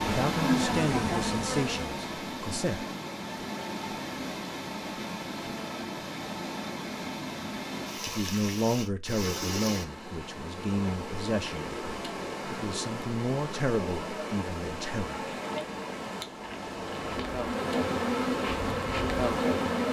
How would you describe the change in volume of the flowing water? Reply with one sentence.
The volume of the flowing water stays about the same.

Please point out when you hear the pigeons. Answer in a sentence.
The pigeons can't be heard in this clip.